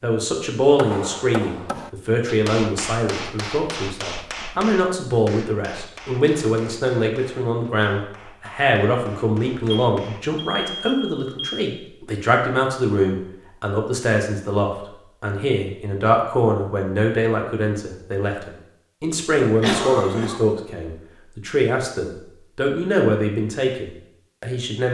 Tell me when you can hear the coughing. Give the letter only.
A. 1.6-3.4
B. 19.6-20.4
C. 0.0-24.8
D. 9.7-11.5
B.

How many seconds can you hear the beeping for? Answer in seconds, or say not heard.
2 s.